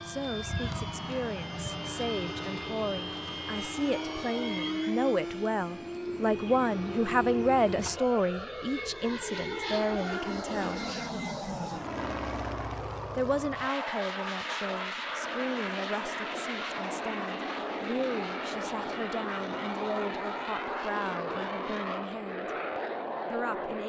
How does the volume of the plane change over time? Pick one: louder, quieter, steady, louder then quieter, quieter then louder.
steady.